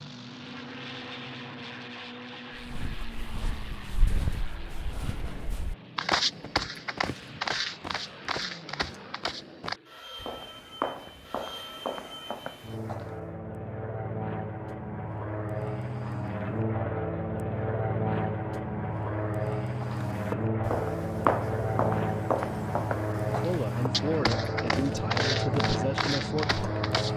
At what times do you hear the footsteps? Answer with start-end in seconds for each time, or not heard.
2.5-13.2, 19.8-27.1.